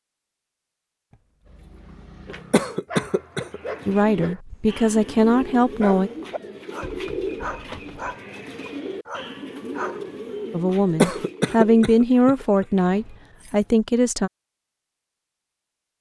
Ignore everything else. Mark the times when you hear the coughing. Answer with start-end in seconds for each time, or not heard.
2.5-3.6, 11.0-12.7.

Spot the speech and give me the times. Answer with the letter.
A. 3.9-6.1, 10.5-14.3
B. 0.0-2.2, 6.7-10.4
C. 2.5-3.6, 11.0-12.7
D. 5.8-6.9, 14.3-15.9
A.